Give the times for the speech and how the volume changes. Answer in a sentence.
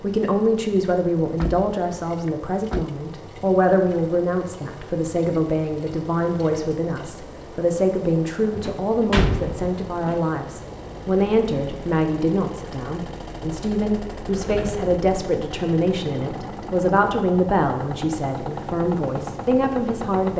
The speech can be heard from 0.0 to 20.3 s, at a steady volume.